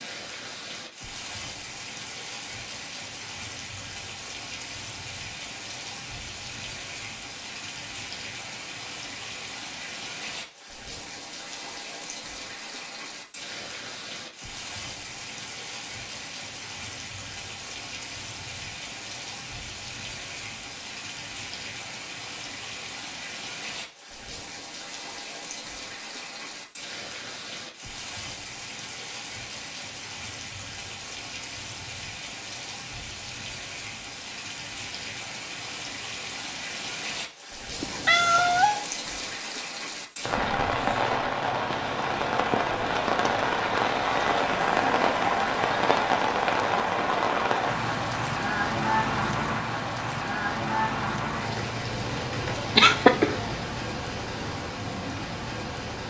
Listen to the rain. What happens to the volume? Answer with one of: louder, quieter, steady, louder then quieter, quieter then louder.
louder.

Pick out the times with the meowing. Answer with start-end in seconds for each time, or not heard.
37.8-38.8.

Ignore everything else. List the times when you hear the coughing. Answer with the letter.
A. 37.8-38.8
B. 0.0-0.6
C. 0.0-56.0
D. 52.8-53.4
D.